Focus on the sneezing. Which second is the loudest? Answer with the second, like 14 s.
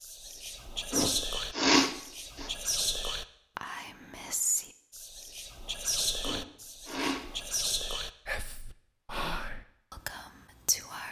2 s.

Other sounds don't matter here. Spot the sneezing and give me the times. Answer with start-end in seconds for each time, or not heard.
0.9-2.5, 6.2-7.3.